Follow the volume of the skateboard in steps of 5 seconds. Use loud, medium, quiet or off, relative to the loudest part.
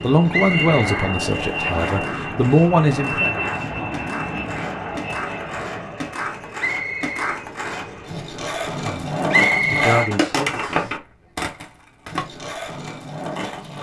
medium, loud, loud.